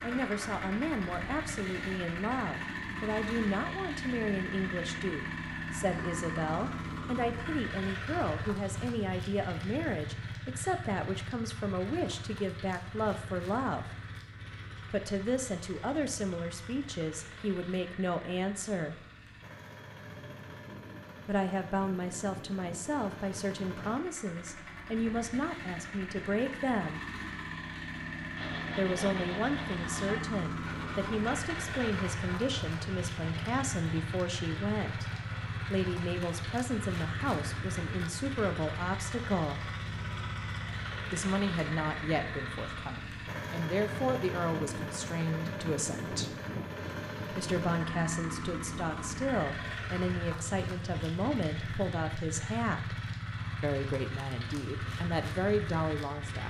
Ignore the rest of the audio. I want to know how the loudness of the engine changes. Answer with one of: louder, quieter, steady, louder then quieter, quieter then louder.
quieter then louder.